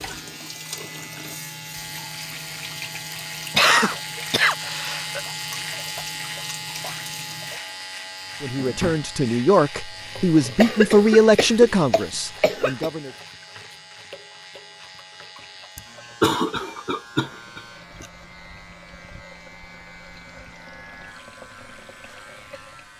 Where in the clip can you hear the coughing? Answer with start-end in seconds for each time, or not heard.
3.5-5.2, 10.6-12.9, 15.8-18.1.